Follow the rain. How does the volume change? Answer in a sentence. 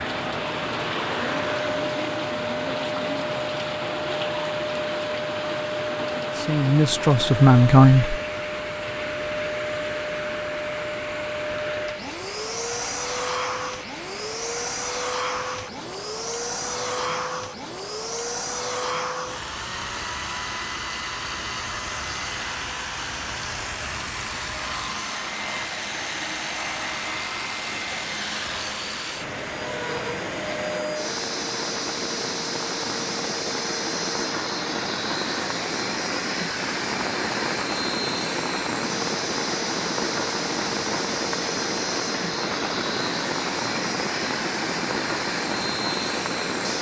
The volume of the rain goes down, then up.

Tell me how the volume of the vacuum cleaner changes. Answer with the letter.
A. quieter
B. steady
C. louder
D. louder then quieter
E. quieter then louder
B.